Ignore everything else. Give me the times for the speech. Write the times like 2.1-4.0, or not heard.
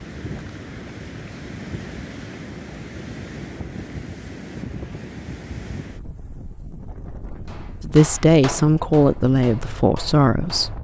7.8-10.7.